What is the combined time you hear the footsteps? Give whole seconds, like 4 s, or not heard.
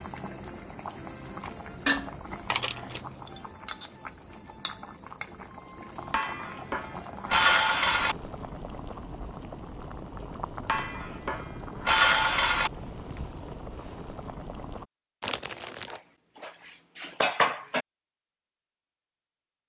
not heard.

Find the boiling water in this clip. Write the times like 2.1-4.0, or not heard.
0.0-14.8.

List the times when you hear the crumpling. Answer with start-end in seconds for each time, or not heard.
2.5-3.0, 15.2-16.0.